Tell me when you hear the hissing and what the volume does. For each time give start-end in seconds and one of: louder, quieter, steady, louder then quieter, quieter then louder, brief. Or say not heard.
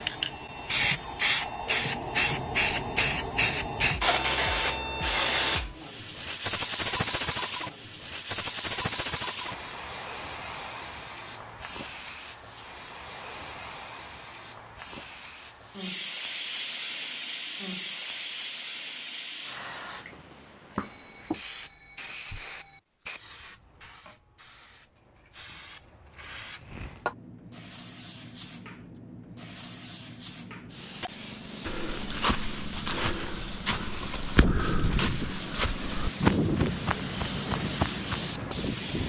0.0-39.0 quieter then louder.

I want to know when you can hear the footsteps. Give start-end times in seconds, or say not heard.
31.6-38.5.